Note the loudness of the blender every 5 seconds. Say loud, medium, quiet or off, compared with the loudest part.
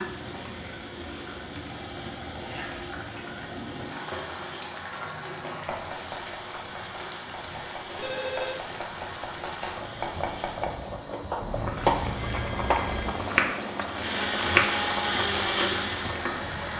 quiet, quiet, medium, loud.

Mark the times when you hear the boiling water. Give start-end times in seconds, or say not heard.
0.0-16.7.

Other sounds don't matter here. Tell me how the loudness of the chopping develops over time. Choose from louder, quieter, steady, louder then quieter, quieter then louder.
louder.